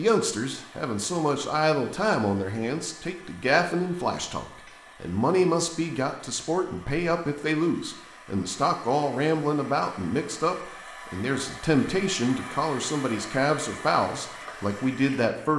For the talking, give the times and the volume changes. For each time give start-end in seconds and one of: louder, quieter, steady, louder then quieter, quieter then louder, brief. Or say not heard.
0.0-15.5 steady.